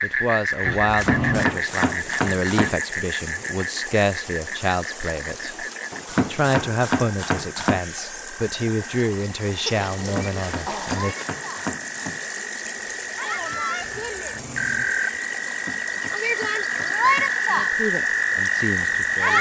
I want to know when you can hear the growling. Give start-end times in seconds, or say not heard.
0.6-1.5, 9.7-11.3, 14.2-15.0.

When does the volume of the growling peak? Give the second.
1 s.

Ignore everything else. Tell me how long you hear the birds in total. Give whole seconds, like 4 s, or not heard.
not heard.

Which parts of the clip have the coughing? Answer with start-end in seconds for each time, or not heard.
not heard.